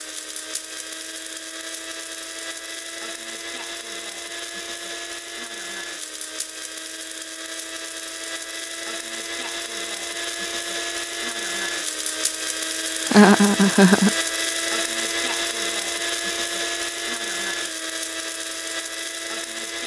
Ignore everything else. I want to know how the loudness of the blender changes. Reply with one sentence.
The volume of the blender goes up.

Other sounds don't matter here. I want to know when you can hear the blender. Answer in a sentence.
The blender can be heard from 0.0 to 19.8 s.